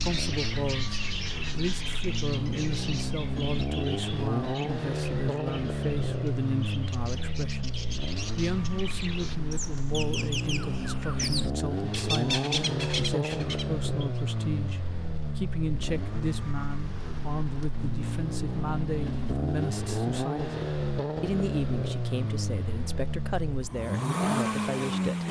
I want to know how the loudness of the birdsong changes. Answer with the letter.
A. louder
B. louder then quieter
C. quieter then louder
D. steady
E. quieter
C.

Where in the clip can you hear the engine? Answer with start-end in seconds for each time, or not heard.
0.0-25.2.